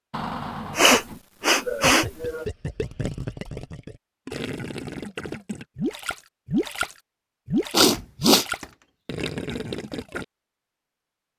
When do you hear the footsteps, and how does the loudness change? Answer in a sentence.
You can't hear the footsteps here.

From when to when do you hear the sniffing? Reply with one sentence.
You can hear the sniffing from 0.8 to 2.5 s and from 7.7 to 8.4 s.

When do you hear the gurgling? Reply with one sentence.
You can hear the gurgling from 1.8 to 10.2 s.